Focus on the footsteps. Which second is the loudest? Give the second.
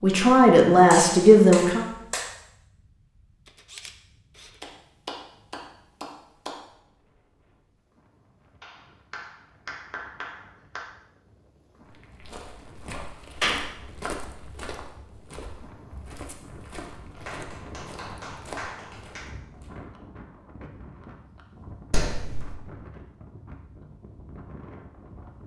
14 s.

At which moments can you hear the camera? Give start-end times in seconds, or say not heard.
3.5-4.6.